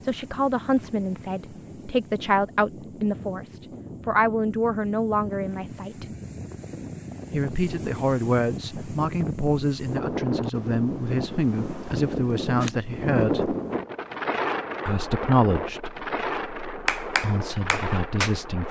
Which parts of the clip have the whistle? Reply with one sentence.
The whistle can't be heard in this clip.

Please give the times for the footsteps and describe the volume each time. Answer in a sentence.
The footsteps can't be heard in this clip.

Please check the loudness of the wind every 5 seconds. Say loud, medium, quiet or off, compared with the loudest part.
quiet, medium, loud, loud.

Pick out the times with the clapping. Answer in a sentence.
The clapping can be heard from 16.9 to 18.5 s.